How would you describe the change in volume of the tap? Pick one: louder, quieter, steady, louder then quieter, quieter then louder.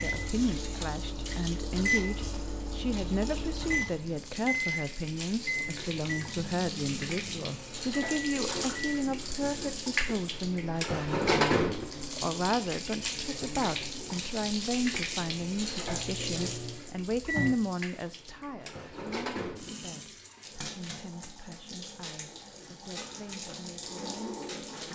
louder then quieter.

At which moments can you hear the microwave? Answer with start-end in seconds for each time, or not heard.
0.0-9.0, 15.8-17.6.